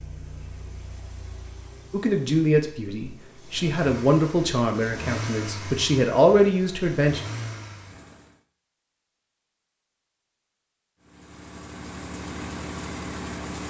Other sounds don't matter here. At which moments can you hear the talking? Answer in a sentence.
The talking can be heard from 1.9 to 7.2 s.